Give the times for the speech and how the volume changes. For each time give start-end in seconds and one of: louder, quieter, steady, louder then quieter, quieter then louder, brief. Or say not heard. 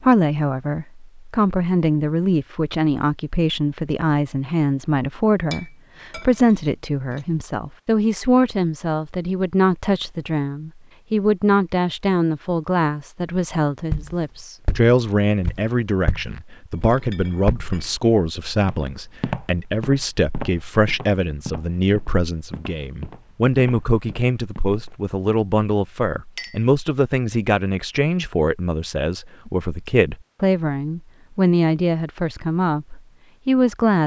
0.0-34.0 steady.